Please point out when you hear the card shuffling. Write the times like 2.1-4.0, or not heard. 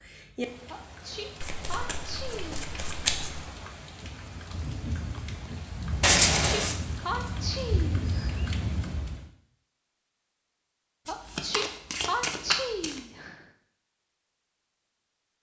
1.4-3.4, 6.0-6.8, 11.1-13.0.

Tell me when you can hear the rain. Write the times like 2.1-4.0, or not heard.
0.0-9.3.